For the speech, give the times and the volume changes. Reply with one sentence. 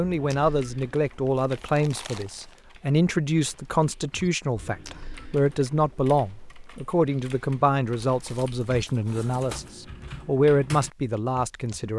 You can hear the speech from 0.0 to 11.9 s, at a steady volume.